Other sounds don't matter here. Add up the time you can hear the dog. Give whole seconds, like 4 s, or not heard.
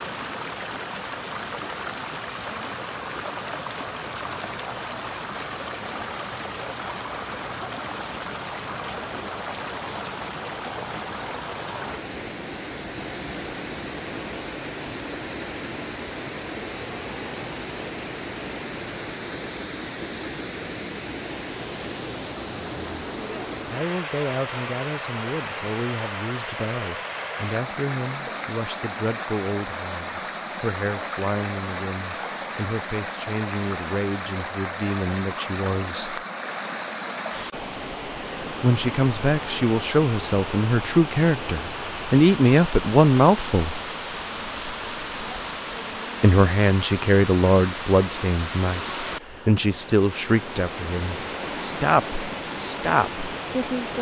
not heard.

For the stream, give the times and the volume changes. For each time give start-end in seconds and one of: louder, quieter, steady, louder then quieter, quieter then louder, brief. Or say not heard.
0.0-53.9 steady.